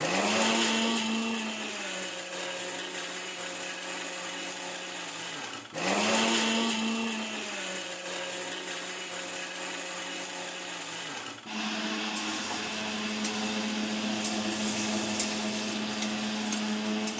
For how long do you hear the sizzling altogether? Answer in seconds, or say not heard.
5 s.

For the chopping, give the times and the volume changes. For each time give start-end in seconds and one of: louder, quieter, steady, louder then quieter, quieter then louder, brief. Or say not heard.
not heard.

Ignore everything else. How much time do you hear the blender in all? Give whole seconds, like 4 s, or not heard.
17 s.